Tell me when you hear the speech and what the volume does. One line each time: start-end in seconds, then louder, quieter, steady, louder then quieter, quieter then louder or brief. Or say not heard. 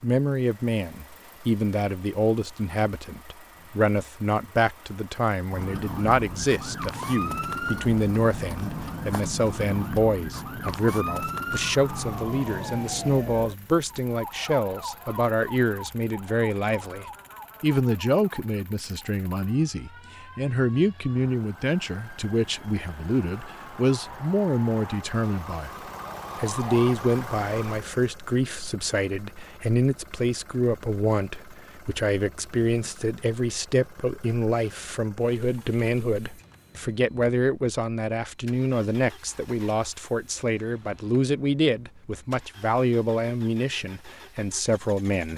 0.0-45.3 steady.